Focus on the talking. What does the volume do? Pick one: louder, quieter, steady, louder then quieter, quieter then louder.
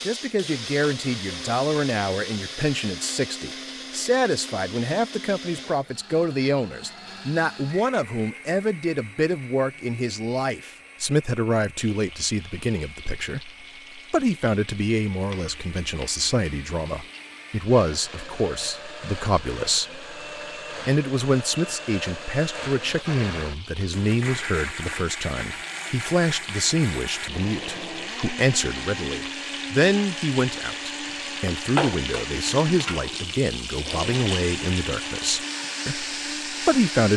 steady.